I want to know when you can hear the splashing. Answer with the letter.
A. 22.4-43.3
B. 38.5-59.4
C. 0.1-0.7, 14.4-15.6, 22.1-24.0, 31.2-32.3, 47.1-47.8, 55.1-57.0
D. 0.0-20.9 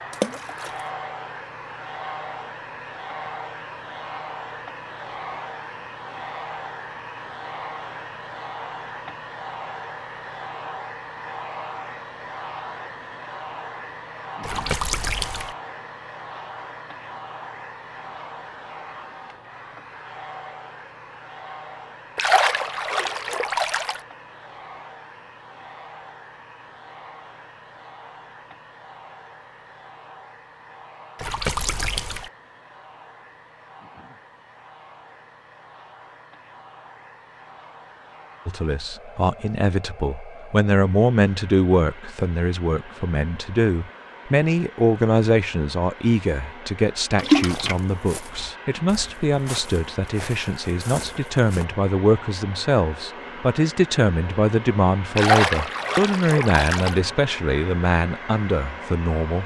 C.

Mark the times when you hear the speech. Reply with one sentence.
The speech can be heard from 38.5 to 59.4 s.